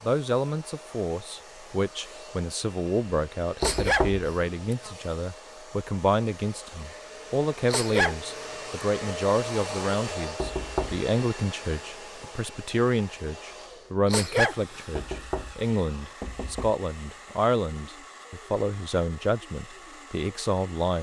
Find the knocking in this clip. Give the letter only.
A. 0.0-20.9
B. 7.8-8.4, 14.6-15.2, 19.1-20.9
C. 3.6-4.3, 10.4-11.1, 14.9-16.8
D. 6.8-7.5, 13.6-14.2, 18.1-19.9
C.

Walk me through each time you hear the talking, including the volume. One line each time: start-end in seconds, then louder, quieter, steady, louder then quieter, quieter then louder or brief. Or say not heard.
0.0-20.9 steady.